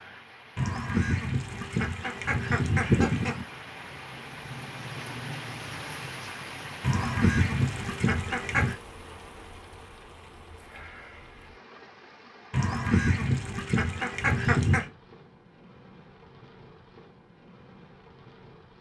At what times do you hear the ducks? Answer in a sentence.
The ducks can be heard from 0.6 to 3.5 s, from 6.8 to 8.8 s and from 12.5 to 14.9 s.